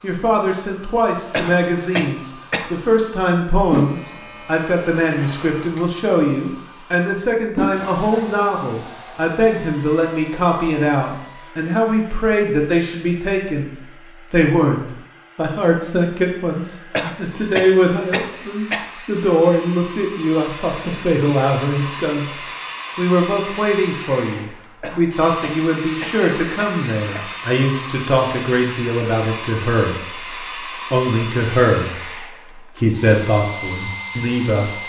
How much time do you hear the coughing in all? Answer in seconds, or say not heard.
6 s.